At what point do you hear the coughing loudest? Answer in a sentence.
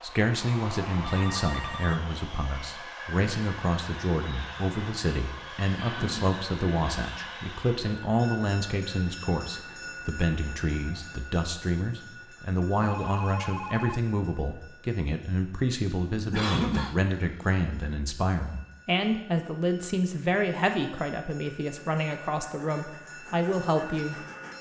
The volume of the coughing peaks at 17 seconds.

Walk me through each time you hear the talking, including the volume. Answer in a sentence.
The talking can be heard from 0.0 to 24.1 s, at a steady volume.